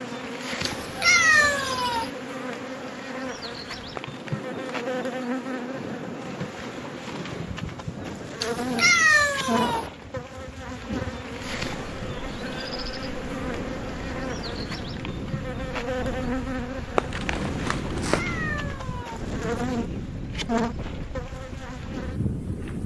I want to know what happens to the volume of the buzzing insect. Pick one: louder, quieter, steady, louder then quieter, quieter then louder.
steady.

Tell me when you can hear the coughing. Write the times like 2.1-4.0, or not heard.
4.0-4.5, 16.9-18.2.